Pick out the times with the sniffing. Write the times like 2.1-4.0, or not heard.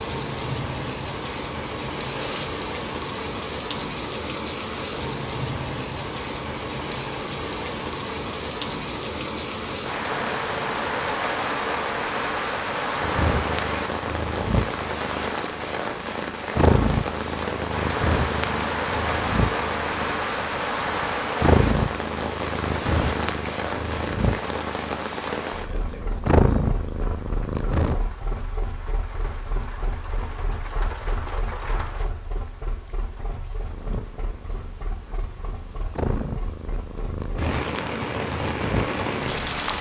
2.1-2.5.